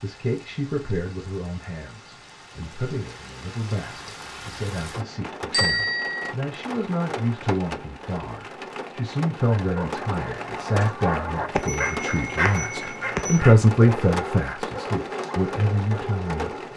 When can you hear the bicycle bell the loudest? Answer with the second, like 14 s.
6 s.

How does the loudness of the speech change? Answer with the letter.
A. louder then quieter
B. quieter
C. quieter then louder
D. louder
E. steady
D.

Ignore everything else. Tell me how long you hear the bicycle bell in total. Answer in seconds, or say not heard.
3 s.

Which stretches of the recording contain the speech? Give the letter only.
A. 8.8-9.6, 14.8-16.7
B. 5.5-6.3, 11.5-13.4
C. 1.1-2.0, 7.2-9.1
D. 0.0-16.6
D.